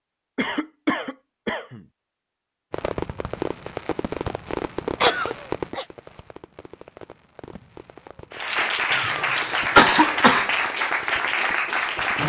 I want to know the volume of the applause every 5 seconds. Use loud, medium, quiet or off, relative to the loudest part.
off, loud, loud.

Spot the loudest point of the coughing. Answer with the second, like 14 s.
10 s.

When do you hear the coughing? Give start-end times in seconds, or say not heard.
0.3-1.9, 5.0-5.8, 8.9-10.5.